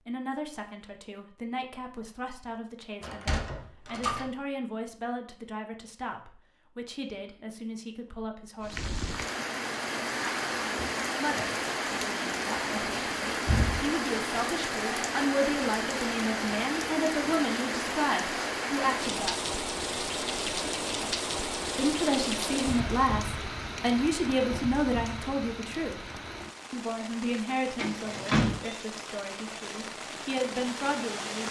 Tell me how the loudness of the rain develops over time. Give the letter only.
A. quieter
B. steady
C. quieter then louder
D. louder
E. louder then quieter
A.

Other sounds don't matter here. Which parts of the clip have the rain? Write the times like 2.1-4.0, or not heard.
8.6-31.4.